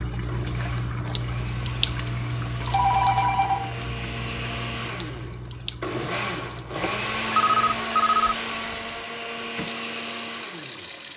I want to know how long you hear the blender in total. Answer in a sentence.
The blender can be heard for 11 seconds in total.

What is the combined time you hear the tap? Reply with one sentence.
The tap can be heard for 11 seconds in total.